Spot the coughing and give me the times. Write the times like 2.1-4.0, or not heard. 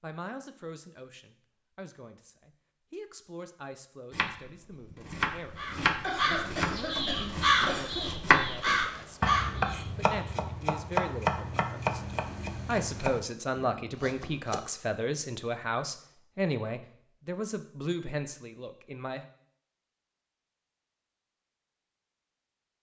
6.0-8.1.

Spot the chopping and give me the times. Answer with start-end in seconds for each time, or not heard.
4.1-14.6.